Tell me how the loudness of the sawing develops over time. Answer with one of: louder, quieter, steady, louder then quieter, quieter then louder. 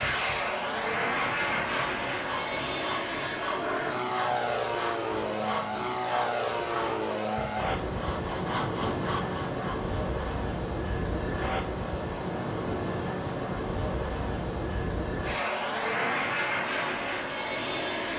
steady.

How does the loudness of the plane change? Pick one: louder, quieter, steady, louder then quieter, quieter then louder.
steady.